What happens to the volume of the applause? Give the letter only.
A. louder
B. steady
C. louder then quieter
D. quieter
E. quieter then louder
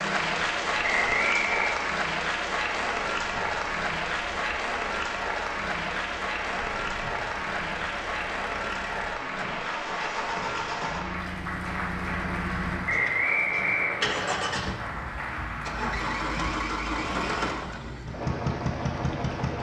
D.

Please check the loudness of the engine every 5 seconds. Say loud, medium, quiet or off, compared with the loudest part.
medium, medium, loud, loud.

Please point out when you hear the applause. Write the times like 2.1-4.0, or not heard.
0.0-17.6.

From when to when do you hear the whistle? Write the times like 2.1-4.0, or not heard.
0.8-1.8, 12.8-14.4.